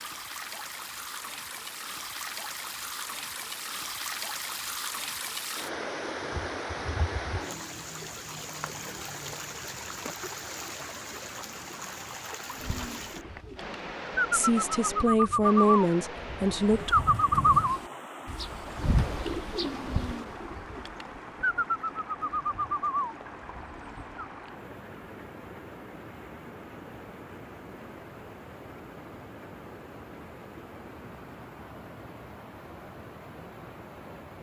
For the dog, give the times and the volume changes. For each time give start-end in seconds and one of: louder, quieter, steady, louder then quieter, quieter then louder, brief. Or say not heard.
not heard.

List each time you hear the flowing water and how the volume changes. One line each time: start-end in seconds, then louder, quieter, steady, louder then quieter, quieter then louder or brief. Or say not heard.
0.0-34.3 quieter.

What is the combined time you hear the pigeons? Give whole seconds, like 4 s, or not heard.
12 s.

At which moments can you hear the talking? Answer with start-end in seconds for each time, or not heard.
14.3-16.9.